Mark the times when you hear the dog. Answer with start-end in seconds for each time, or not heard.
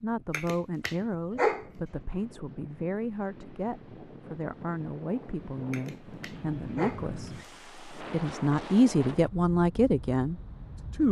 0.3-1.6, 5.7-7.5.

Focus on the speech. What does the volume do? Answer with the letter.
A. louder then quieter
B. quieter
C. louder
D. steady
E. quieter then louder
C.